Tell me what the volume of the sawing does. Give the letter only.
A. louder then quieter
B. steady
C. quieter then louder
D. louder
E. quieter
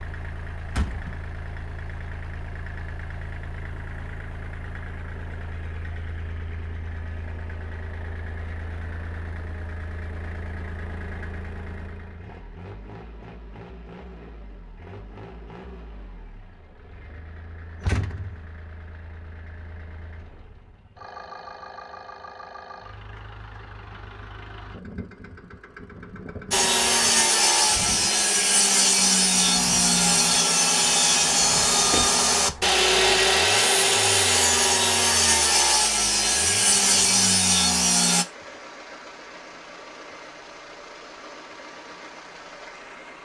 B.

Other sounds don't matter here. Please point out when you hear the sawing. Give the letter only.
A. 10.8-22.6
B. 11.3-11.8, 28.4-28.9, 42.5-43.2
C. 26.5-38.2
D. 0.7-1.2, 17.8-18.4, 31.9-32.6
C.